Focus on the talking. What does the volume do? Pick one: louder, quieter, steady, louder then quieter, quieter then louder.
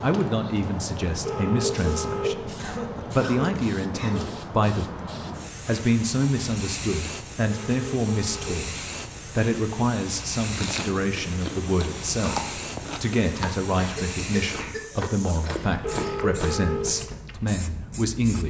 steady.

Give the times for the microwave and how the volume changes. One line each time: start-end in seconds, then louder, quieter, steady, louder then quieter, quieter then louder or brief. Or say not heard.
not heard.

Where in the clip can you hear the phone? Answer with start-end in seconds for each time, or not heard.
1.2-2.4, 7.5-8.6, 15.8-16.9.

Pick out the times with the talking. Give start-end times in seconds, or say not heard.
0.0-18.4.